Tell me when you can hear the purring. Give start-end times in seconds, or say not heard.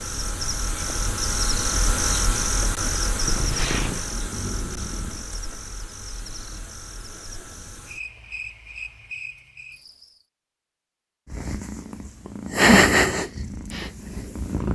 3.1-5.2, 11.3-14.6.